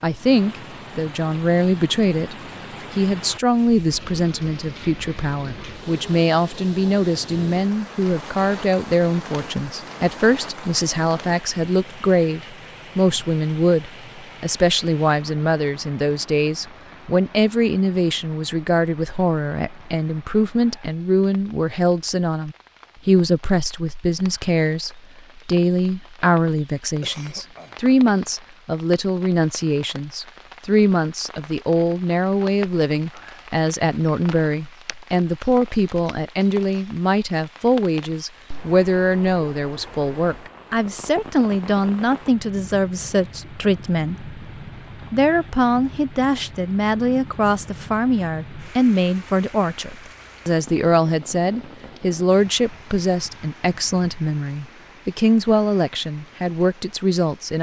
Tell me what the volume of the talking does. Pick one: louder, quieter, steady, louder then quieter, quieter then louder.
steady.